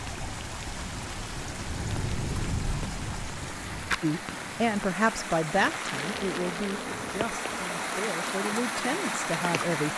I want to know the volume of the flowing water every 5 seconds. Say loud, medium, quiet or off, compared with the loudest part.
medium, loud.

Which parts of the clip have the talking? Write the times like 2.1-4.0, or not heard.
4.0-9.9.